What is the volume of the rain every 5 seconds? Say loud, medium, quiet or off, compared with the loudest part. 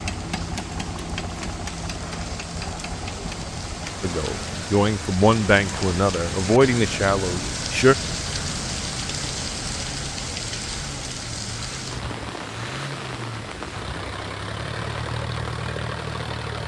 medium, loud, loud, medium.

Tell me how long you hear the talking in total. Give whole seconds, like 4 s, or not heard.
4 s.